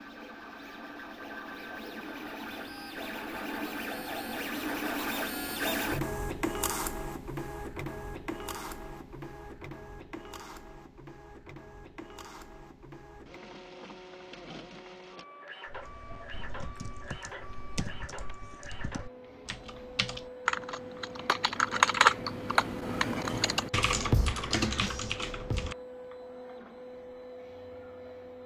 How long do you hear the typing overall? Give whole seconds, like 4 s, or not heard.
10 s.